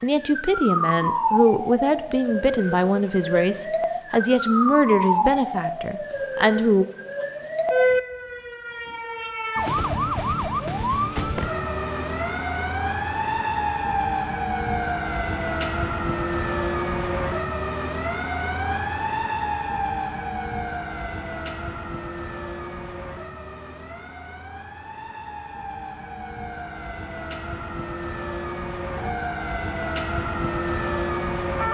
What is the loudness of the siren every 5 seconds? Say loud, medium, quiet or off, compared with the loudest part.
loud, loud, loud, loud, medium, medium, loud.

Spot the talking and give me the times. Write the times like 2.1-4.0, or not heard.
0.0-6.8.